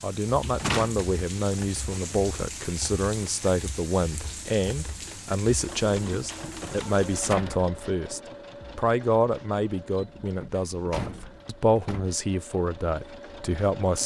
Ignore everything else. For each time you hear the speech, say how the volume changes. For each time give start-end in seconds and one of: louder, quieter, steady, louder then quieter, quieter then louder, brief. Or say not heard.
0.0-14.0 steady.